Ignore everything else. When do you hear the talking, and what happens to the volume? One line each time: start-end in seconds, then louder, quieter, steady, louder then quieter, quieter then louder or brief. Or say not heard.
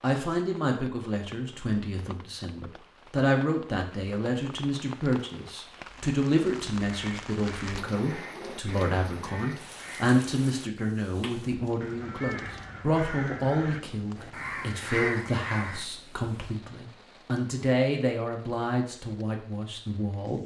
0.0-20.4 steady.